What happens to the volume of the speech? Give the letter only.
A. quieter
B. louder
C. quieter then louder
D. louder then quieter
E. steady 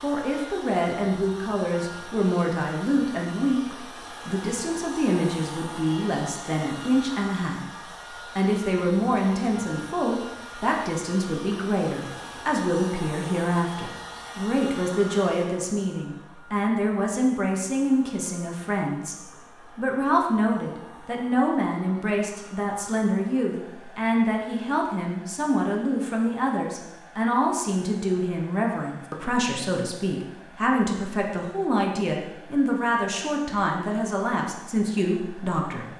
E.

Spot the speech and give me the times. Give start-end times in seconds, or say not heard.
0.0-35.9.